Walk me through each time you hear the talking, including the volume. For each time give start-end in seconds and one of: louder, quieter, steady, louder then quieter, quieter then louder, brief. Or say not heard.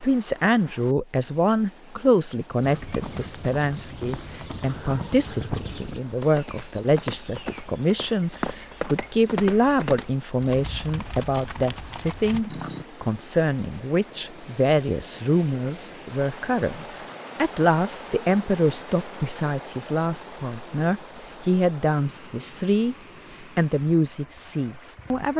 0.0-25.3 steady.